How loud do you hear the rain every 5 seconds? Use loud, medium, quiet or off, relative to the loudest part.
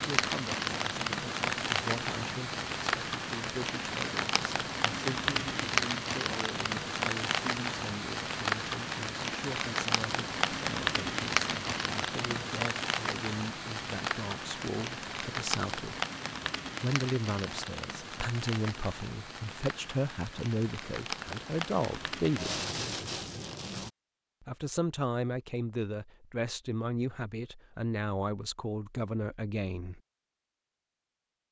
loud, loud, loud, medium, medium, off, off.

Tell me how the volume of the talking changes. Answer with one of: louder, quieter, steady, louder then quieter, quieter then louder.
louder.